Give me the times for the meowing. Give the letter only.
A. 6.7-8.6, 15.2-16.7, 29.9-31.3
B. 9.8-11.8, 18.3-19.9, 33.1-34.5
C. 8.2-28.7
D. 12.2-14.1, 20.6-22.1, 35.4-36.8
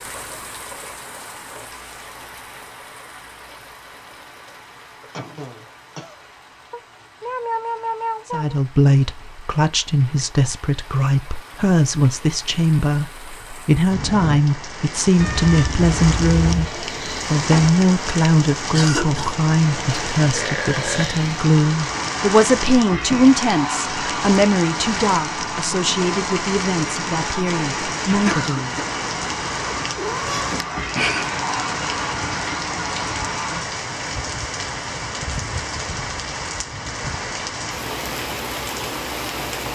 A.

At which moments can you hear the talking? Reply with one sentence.
The talking can be heard from 8.2 to 28.7 s.